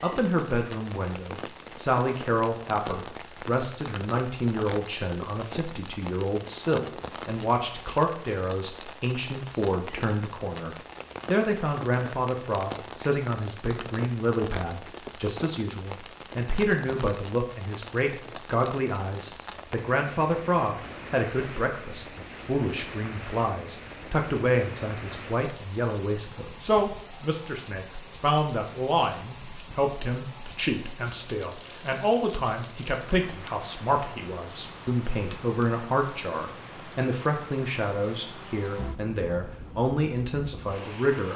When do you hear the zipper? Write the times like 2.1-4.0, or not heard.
not heard.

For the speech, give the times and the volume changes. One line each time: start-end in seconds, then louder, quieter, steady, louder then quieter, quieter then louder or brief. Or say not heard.
0.0-41.3 steady.